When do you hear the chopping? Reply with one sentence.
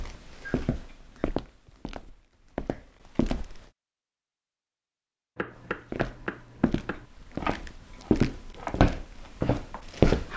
The chopping can be heard from 5.3 to 10.3 s.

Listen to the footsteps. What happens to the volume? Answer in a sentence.
The volume of the footsteps goes up.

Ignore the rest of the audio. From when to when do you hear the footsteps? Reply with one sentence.
The footsteps can be heard from 0.0 to 3.6 s and from 5.5 to 10.3 s.